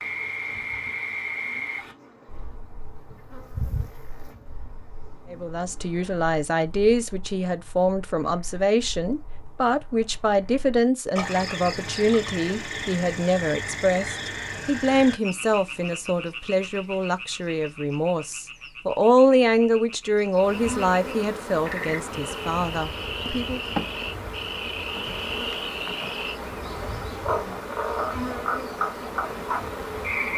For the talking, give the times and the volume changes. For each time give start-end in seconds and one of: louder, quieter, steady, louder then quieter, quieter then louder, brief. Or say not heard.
5.3-23.6 steady.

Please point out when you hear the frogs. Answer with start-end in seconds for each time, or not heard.
0.0-30.3.